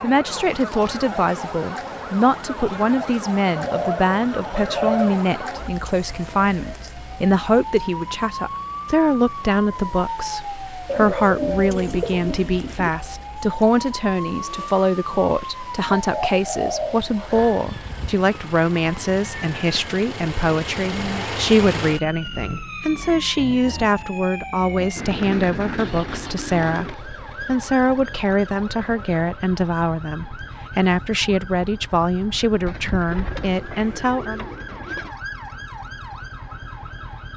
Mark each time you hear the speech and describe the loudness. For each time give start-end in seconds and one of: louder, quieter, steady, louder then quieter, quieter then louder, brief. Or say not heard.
0.0-34.5 steady.